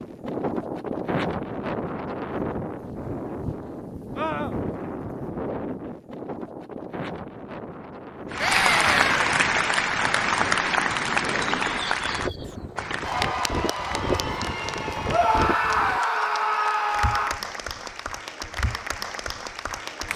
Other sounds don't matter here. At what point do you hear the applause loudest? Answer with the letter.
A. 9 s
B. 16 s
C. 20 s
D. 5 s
A.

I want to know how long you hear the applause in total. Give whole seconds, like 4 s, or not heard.
12 s.